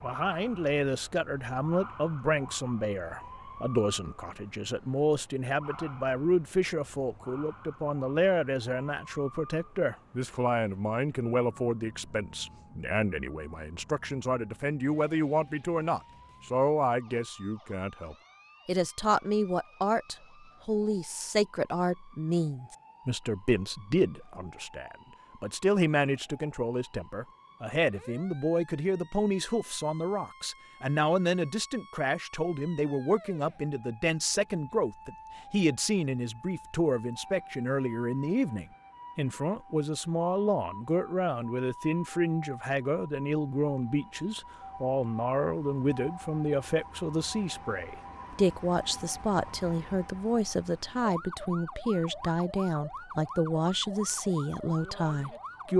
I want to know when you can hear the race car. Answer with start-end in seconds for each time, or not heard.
not heard.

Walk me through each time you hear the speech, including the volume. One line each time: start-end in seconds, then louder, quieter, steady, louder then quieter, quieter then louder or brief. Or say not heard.
0.0-55.7 steady.